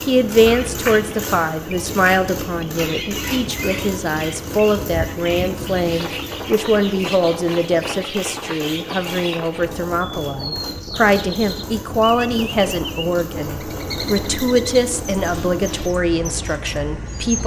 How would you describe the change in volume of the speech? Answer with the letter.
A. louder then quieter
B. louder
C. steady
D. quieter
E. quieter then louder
C.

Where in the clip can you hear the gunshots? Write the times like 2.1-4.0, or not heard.
not heard.